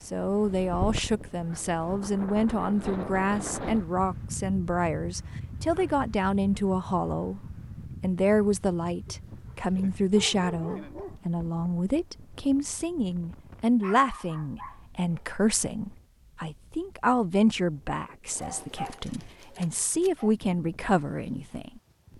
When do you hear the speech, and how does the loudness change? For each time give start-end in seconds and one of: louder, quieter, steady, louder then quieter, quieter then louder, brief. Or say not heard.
0.1-7.4 steady
8.0-21.8 steady.